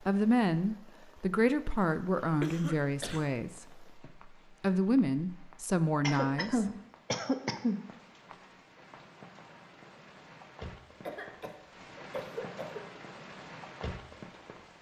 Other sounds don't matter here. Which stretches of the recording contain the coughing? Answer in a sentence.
The coughing can be heard from 2.4 to 3.2 s, from 6.0 to 7.8 s and from 11.1 to 12.8 s.